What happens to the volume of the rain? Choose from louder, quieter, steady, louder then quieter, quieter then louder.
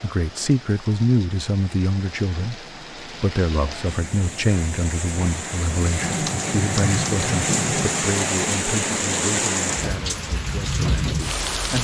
louder.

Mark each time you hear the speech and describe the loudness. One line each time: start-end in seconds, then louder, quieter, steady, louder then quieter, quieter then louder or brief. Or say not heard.
0.0-11.7 quieter.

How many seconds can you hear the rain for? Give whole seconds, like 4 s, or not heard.
12 s.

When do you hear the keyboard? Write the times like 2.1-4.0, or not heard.
6.0-8.1.